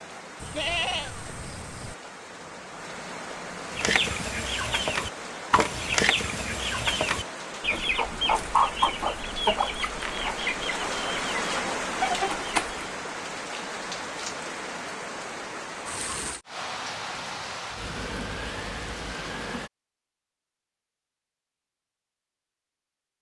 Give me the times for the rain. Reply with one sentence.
The rain can be heard from 0.0 to 19.7 s.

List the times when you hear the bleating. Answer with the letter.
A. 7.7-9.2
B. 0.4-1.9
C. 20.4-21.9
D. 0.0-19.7
B.